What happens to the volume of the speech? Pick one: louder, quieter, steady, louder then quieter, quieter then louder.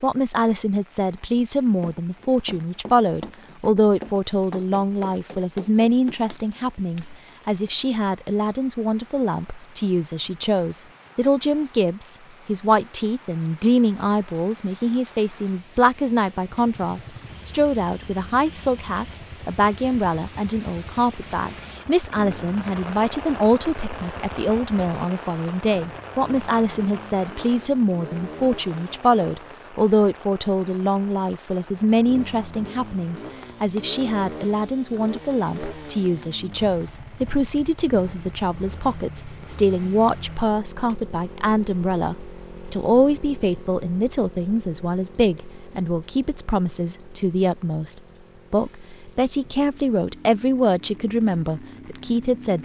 steady.